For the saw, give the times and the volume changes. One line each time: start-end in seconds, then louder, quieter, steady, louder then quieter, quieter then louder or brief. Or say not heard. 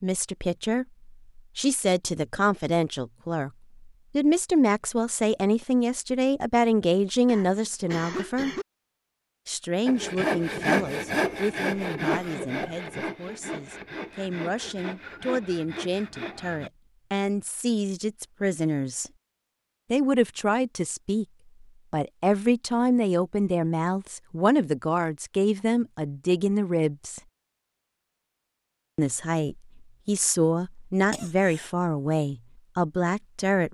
9.8-16.7 quieter.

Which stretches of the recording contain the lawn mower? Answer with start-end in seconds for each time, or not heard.
not heard.